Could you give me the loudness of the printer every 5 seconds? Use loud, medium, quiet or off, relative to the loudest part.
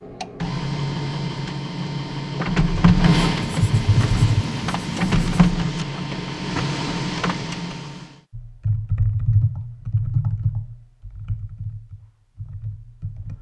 loud, loud, off.